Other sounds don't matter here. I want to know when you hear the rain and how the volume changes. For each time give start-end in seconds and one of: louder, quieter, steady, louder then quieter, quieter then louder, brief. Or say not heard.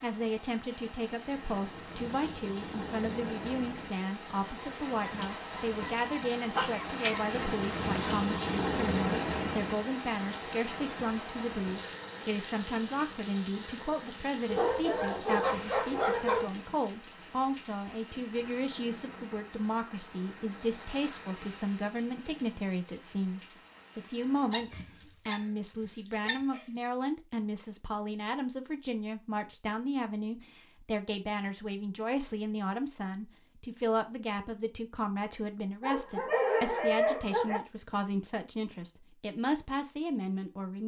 0.0-24.7 louder then quieter.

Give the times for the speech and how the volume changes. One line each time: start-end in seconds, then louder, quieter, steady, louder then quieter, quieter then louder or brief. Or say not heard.
0.0-40.8 steady.